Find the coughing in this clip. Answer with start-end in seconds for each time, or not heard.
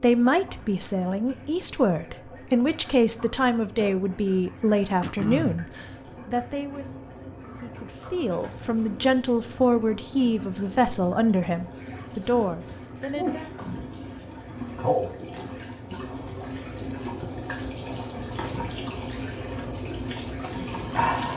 5.0-5.7.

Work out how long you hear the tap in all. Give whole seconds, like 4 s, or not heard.
21 s.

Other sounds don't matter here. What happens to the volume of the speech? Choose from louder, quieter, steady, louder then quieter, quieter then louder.
steady.